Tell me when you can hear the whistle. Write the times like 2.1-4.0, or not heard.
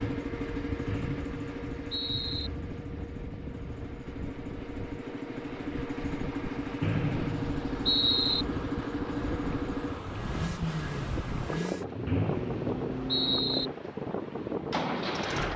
0.8-2.5, 6.8-8.4, 12.1-13.7.